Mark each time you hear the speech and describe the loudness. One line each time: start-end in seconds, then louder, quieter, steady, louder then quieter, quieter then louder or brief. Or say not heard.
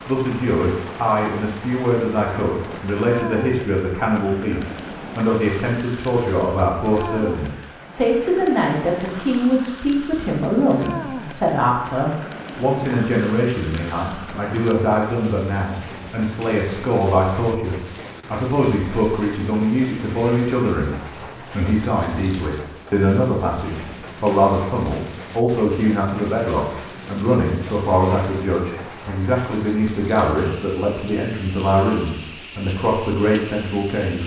0.1-34.2 steady.